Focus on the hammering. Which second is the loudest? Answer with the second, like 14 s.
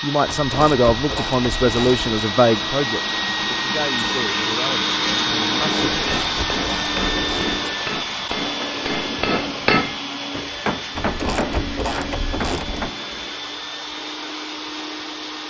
10 s.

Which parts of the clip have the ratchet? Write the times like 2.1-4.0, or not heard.
0.2-2.2, 5.9-7.6, 10.9-12.9.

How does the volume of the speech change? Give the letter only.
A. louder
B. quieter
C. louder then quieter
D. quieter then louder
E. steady
B.